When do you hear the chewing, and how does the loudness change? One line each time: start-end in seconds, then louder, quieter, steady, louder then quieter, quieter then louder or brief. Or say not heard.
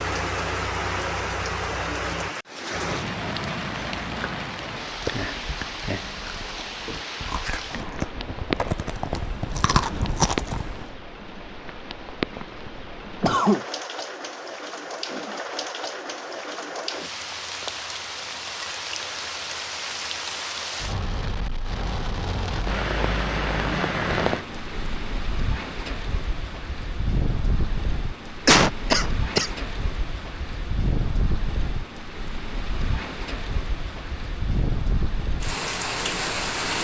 4.8-10.8 louder.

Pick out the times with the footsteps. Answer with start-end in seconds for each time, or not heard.
not heard.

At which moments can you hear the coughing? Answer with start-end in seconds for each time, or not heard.
13.2-13.7, 28.4-29.5.